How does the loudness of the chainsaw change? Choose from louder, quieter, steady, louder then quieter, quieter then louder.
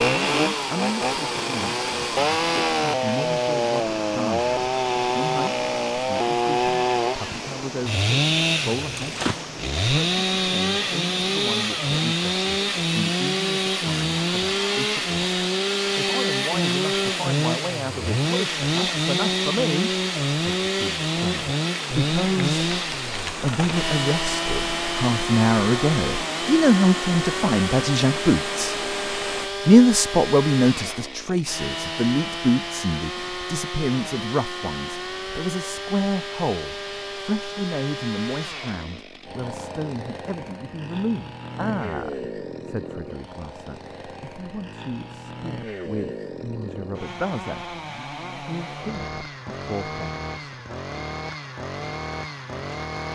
quieter.